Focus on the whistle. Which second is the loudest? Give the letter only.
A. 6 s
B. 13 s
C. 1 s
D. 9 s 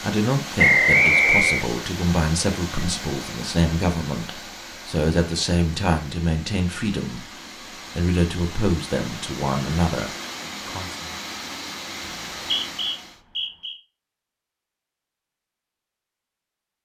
C.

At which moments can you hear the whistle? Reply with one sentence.
You can hear the whistle from 0.6 to 1.6 s and from 12.1 to 13.8 s.